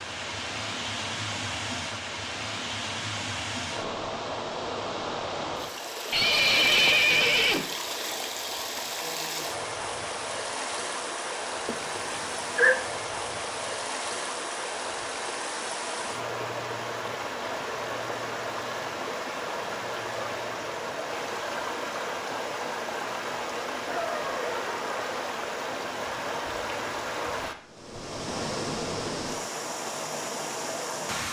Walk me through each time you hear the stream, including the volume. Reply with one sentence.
You can hear the stream from 0.0 to 31.2 s, at a steady volume.